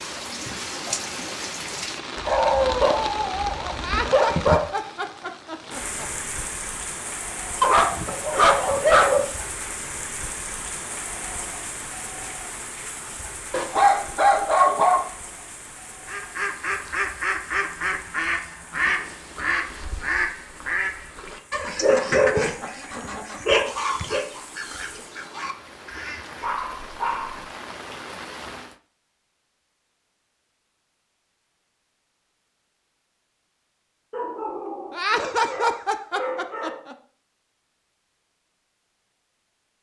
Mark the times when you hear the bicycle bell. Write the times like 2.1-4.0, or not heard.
not heard.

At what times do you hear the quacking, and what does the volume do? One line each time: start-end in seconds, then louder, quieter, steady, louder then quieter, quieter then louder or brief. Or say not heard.
16.1-26.4 quieter.